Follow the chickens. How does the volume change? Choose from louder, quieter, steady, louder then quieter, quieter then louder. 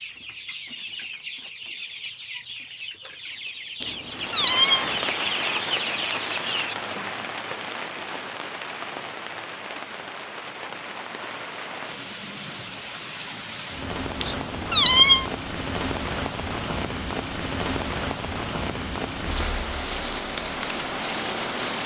louder.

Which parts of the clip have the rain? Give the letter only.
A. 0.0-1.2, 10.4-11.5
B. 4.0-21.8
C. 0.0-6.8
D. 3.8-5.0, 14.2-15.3
B.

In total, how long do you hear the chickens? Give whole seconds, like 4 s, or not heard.
7 s.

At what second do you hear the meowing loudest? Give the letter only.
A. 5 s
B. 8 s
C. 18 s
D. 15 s
D.